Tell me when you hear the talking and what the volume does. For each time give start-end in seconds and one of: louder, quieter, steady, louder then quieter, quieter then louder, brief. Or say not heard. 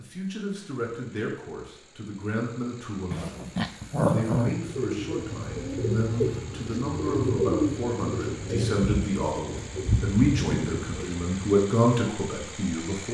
0.0-13.0 louder.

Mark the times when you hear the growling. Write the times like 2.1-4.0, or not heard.
3.1-4.6.